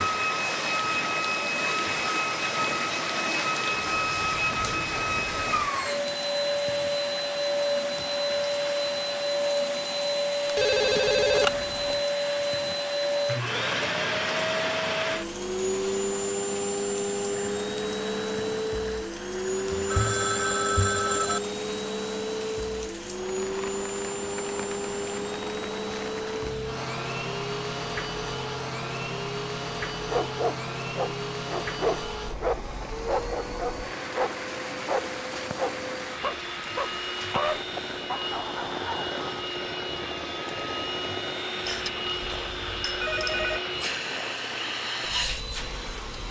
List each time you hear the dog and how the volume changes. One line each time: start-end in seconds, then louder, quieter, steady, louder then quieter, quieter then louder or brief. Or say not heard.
30.1-39.2 steady.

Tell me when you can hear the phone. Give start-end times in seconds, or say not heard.
10.4-12.0, 19.7-21.4, 41.6-43.6.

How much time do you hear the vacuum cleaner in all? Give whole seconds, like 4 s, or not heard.
46 s.